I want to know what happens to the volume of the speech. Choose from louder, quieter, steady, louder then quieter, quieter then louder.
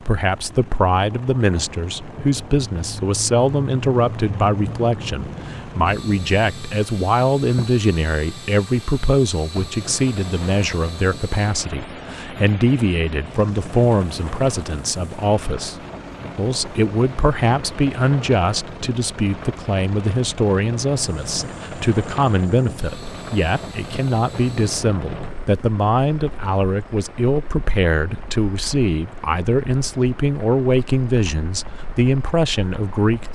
steady.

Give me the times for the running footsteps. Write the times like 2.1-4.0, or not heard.
not heard.